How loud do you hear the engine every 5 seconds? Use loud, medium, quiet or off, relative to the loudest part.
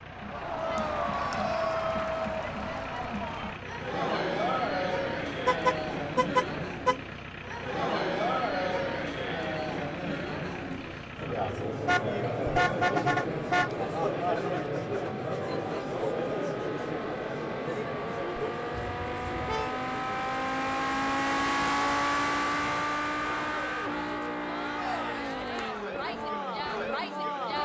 quiet, quiet, quiet, medium, loud, medium.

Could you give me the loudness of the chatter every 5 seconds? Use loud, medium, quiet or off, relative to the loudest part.
loud, loud, loud, loud, medium, loud.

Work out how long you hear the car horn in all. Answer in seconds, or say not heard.
4 s.